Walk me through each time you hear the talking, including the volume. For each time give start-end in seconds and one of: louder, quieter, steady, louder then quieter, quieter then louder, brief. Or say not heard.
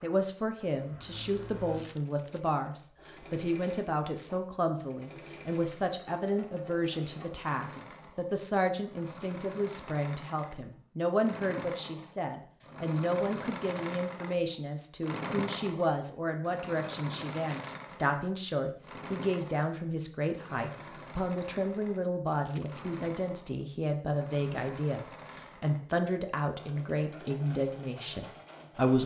0.0-29.0 steady.